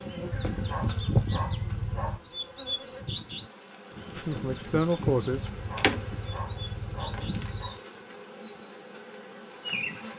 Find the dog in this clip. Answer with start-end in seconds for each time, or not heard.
0.3-2.2, 5.3-7.8.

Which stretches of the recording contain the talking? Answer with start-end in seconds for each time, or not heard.
4.2-5.5.